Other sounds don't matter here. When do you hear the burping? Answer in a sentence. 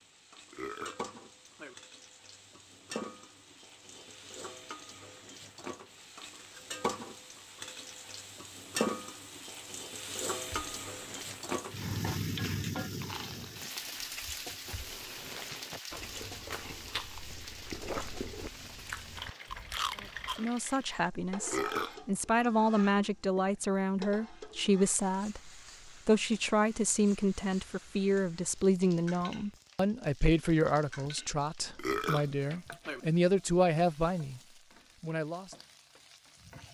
The burping can be heard from 0.5 to 1.8 s, from 21.4 to 22.0 s and from 31.8 to 33.0 s.